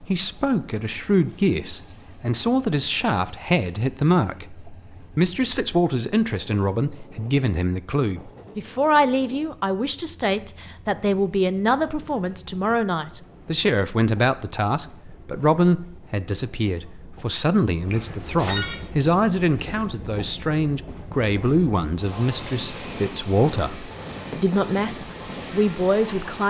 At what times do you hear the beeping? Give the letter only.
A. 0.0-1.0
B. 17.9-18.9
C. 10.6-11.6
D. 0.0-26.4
B.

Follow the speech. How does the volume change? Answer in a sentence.
The loudness of the speech stays about the same.